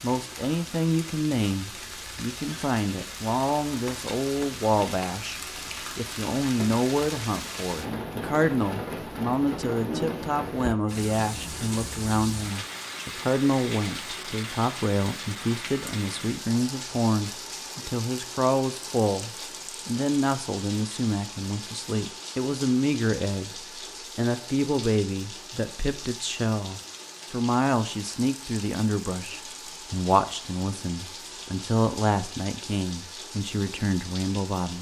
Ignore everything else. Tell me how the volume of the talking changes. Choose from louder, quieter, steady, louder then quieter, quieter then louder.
steady.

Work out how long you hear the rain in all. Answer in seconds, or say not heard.
35 s.